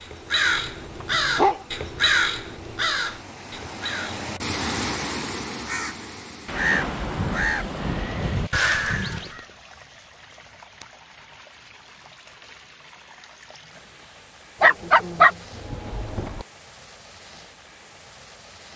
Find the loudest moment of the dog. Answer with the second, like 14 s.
15 s.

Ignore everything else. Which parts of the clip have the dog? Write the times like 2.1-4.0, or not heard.
0.6-2.1, 14.6-16.4.